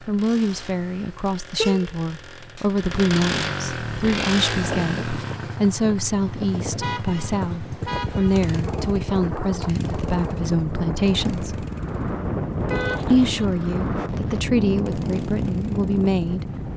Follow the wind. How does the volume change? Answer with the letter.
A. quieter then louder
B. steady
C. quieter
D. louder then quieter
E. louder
E.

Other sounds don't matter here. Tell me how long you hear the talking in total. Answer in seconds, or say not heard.
15 s.